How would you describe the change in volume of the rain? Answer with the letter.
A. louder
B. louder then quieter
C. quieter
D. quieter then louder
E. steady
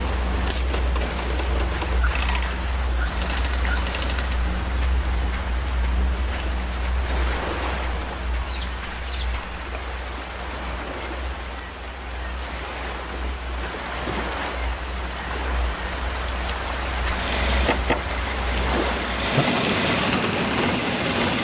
A.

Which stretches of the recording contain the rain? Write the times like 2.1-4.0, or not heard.
0.0-21.3.